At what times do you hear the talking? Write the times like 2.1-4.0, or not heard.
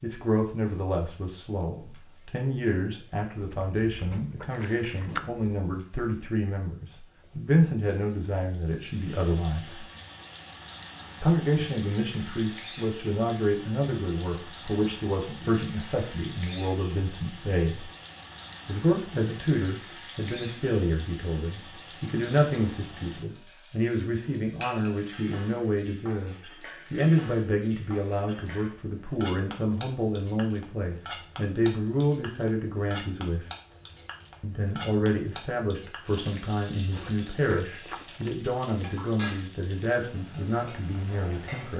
0.0-9.8, 11.2-17.9, 18.6-33.5, 34.4-41.7.